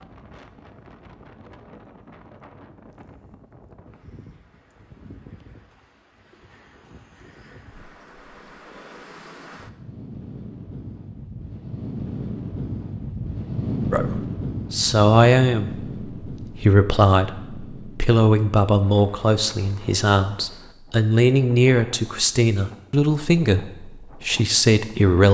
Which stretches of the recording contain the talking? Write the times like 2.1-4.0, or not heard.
13.9-25.2.